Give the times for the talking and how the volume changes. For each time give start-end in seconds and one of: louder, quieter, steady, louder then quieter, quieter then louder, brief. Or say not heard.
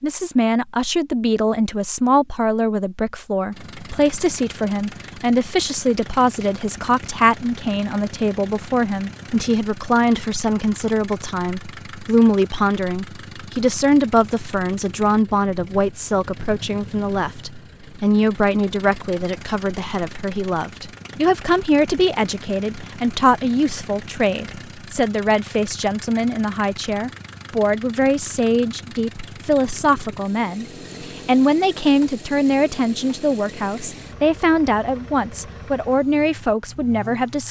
0.0-37.4 steady.